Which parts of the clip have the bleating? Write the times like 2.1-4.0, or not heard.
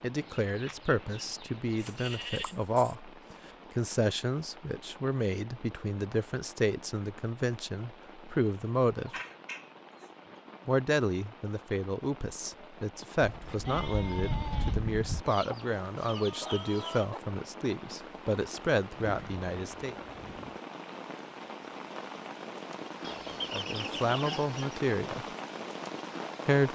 1.8-3.0, 13.2-15.2, 19.0-20.6.